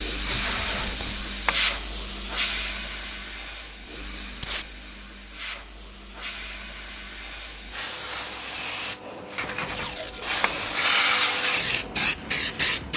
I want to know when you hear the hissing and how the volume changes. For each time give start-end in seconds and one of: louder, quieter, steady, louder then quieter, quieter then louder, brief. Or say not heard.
0.0-12.9 quieter then louder.